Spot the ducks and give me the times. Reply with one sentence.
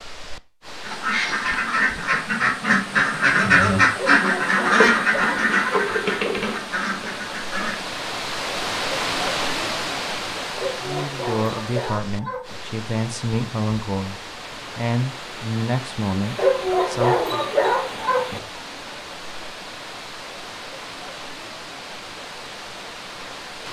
You can hear the ducks from 0.8 to 8.0 s.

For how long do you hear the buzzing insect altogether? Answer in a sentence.
The buzzing insect can't be heard in this clip.